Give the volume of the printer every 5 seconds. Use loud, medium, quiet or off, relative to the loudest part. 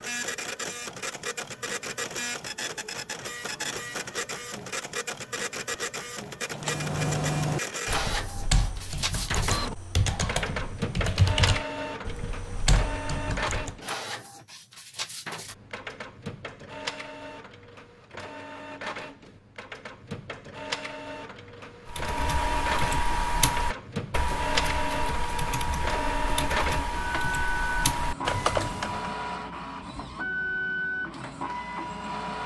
loud, loud, loud, medium, loud, loud, loud.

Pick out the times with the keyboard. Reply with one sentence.
The keyboard can be heard from 6.5 to 13.8 s and from 21.9 to 29.1 s.